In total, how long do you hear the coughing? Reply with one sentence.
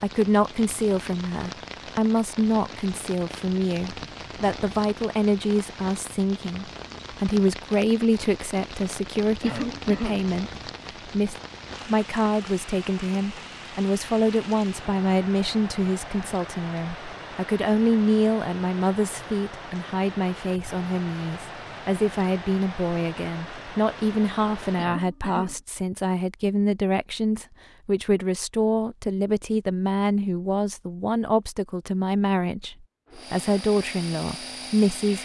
The coughing can be heard for 2 seconds in total.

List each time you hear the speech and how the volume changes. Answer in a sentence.
The speech can be heard from 0.0 to 35.2 s, at a steady volume.